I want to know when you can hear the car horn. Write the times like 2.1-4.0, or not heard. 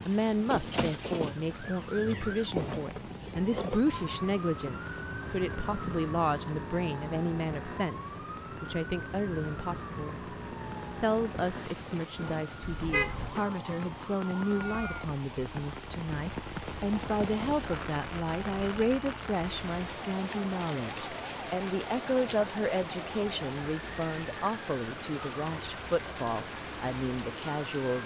12.6-13.4.